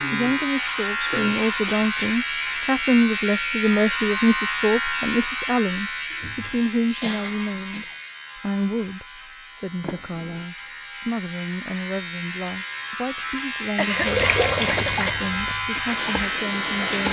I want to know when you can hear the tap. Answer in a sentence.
The tap can be heard from 13.9 to 17.0 s.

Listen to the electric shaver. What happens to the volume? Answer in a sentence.
The loudness of the electric shaver goes down, then up.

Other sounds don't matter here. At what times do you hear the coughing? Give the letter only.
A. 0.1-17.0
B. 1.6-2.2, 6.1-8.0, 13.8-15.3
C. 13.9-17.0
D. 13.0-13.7
B.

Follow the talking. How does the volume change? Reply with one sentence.
The volume of the talking goes down.